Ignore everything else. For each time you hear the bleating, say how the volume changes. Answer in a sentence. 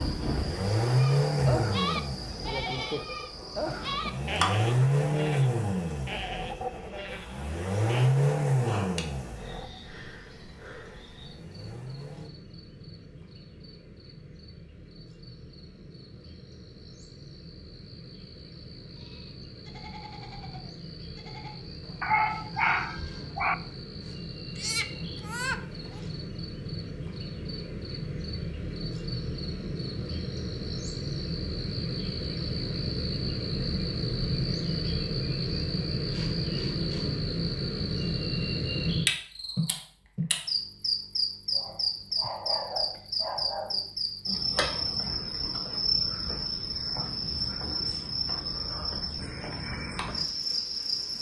The bleating can be heard from 0.9 to 8.1 s, getting quieter; and from 18.9 to 26.0 s, getting quieter then louder.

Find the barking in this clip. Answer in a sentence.
You can hear the barking from 22.0 to 23.6 s and from 41.5 to 43.9 s.